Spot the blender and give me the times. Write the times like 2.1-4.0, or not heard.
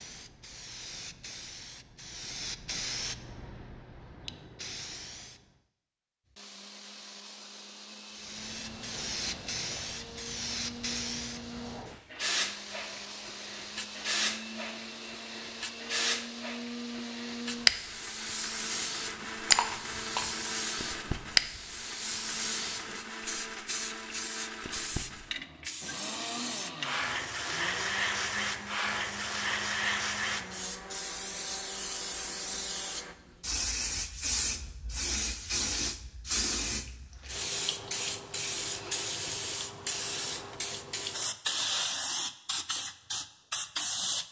6.2-33.1.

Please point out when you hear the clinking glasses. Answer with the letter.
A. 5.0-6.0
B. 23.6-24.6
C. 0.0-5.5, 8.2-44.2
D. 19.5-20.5
D.